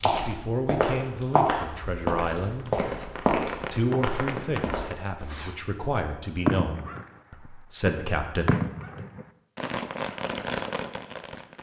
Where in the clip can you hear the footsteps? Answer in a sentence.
You can hear the footsteps from 0.0 to 4.8 s.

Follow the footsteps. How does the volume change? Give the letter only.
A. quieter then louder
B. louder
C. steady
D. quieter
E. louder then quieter
D.